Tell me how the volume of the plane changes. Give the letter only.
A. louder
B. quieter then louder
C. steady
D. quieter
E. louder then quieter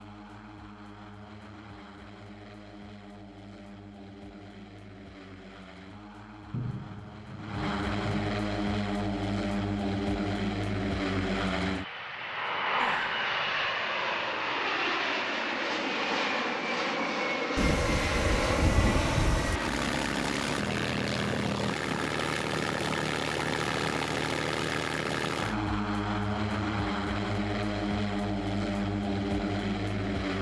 A.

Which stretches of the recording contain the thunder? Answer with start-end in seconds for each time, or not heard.
6.5-8.3, 17.6-19.6.